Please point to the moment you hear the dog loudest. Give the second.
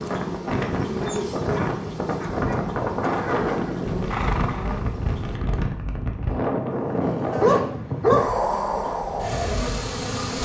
8 s.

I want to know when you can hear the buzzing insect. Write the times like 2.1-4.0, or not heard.
0.0-5.4, 8.3-10.3.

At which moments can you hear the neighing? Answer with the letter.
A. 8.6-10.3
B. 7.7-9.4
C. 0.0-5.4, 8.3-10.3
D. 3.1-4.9
D.